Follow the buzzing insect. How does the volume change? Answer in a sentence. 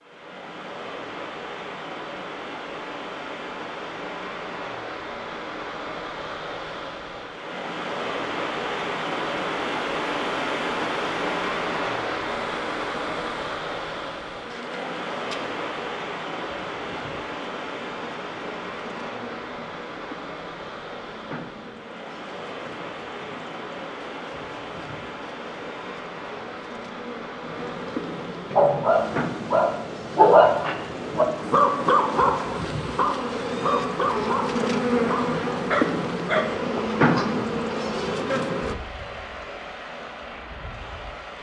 The loudness of the buzzing insect goes up.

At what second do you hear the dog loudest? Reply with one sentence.
The volume of the dog peaks at 30 seconds.